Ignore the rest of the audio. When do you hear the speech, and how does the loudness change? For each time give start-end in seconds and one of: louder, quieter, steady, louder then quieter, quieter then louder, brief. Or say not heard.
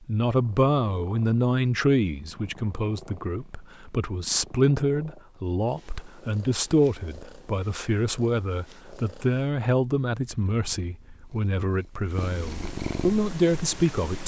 0.1-14.2 steady.